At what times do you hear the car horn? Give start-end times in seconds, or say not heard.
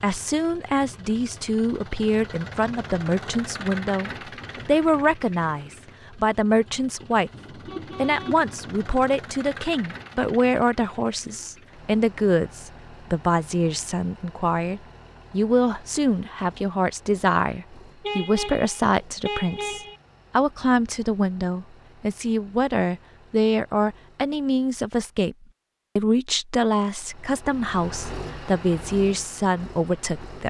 7.3-9.2, 18.0-20.0.